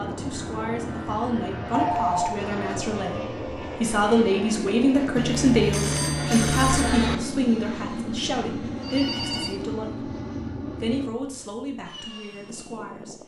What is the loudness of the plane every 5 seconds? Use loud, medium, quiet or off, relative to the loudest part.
loud, loud, medium.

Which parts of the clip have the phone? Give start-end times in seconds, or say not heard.
1.7-2.4, 5.2-7.2, 8.8-9.6.